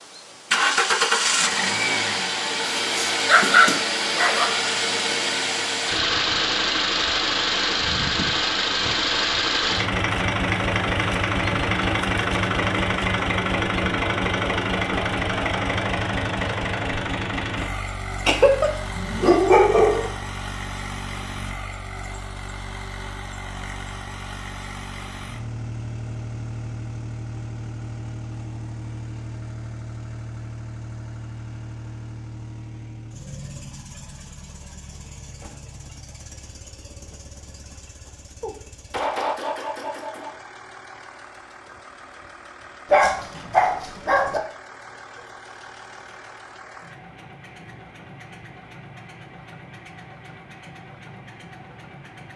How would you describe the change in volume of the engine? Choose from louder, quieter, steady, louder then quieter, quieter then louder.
quieter.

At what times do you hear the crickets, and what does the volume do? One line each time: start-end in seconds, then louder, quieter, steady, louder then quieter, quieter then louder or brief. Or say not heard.
not heard.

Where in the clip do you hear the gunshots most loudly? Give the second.
39 s.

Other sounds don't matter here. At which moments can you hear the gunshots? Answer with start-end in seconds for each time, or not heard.
38.4-40.4.